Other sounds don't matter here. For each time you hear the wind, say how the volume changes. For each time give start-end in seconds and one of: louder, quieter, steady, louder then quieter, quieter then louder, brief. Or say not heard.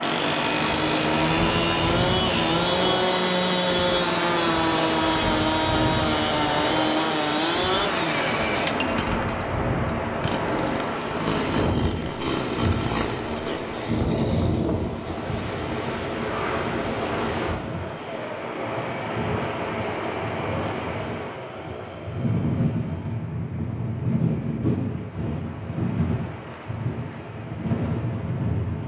0.0-28.8 steady.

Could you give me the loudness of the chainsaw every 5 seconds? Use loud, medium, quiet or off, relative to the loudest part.
loud, loud, medium, quiet, quiet, off.